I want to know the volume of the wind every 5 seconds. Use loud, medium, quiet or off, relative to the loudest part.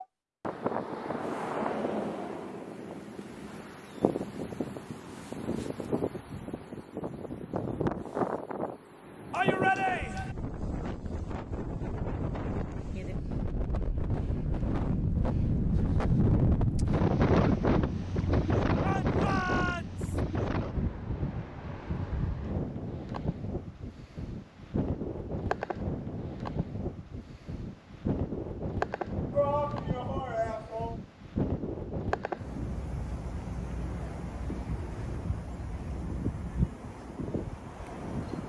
medium, medium, medium, loud, medium, medium, medium, medium.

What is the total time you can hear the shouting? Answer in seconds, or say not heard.
4 s.